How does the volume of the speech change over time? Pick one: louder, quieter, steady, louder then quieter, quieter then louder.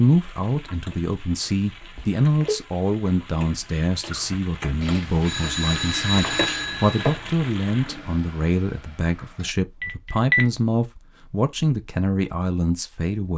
steady.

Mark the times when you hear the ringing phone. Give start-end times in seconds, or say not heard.
1.9-2.6, 4.8-7.2, 9.8-10.4.